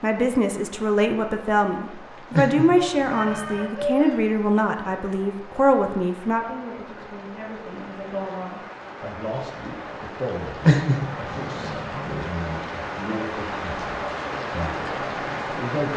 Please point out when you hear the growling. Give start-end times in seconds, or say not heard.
2.3-3.6, 10.6-12.2.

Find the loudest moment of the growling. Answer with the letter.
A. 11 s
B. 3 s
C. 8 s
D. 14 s
A.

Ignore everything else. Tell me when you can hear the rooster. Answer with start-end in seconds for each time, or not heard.
2.8-4.2.